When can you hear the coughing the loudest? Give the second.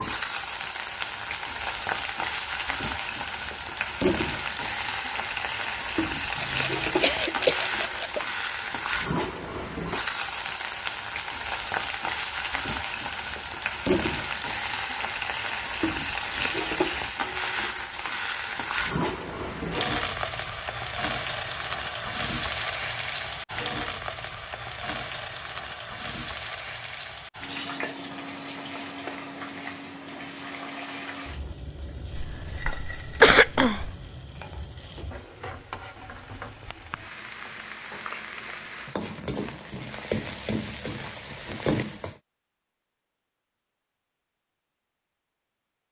33 s.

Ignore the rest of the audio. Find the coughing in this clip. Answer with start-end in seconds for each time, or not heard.
6.3-8.2, 32.1-33.9.